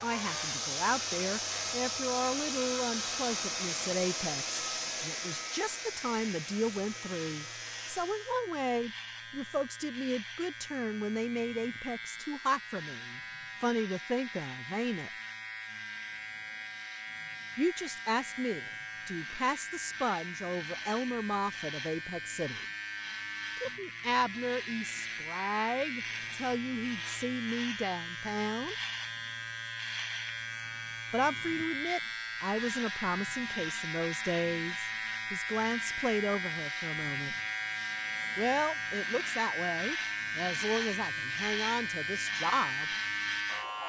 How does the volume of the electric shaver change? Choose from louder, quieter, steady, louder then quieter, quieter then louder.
louder.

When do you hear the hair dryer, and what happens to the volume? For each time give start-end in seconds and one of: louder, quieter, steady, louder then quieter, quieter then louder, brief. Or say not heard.
0.0-8.4 quieter.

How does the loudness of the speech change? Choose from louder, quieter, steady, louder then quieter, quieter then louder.
steady.